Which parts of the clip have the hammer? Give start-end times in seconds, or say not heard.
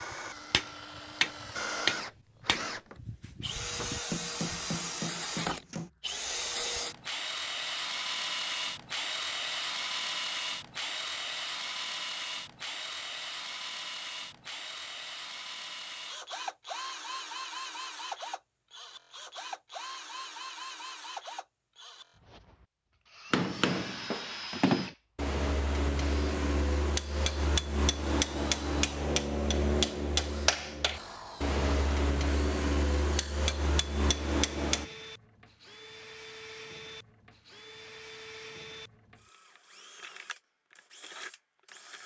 0.0-5.9, 23.3-34.9.